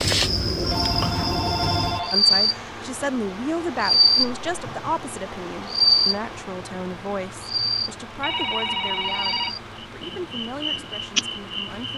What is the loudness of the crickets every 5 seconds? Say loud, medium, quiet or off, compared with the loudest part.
loud, loud, medium.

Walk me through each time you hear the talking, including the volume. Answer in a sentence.
The talking can be heard from 2.1 to 11.9 s, getting quieter.